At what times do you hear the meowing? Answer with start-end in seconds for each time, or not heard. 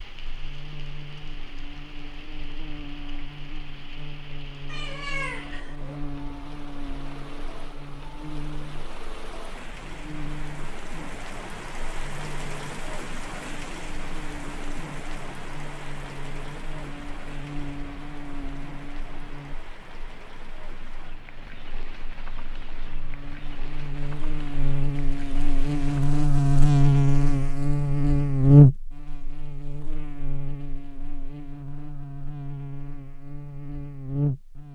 4.7-6.0.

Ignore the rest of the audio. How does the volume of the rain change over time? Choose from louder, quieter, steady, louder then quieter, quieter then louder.
louder then quieter.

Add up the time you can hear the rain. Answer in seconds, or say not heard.
26 s.